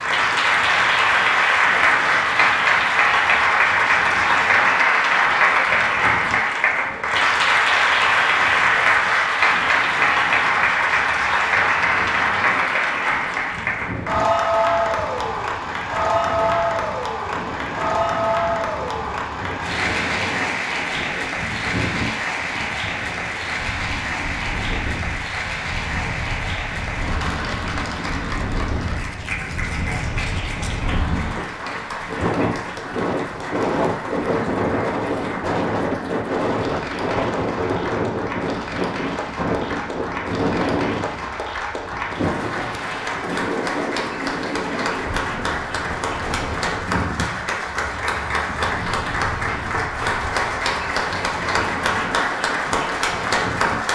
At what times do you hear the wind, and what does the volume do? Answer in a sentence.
The wind can be heard from 0.0 to 53.9 s, getting louder then quieter.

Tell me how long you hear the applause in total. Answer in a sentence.
The applause can be heard for 54 seconds in total.